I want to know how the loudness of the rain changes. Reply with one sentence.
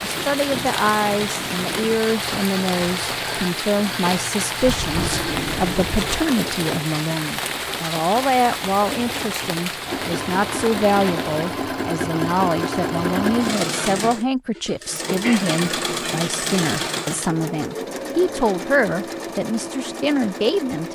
The loudness of the rain stays about the same.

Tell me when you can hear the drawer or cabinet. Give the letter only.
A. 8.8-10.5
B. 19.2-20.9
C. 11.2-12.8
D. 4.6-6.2
D.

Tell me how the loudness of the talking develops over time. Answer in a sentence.
The loudness of the talking stays about the same.